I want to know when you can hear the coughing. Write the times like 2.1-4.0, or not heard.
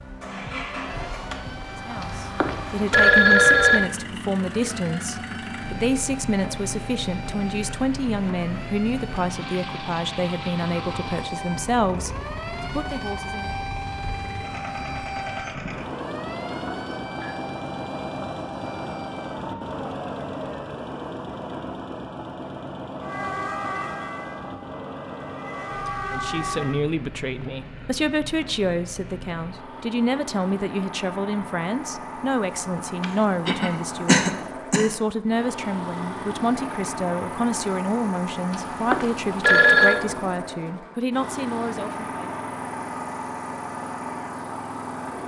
33.0-34.9.